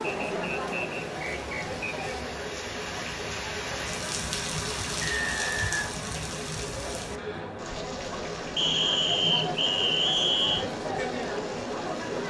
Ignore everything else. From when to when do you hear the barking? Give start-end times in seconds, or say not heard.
not heard.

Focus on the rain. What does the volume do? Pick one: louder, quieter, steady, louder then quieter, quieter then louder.
louder then quieter.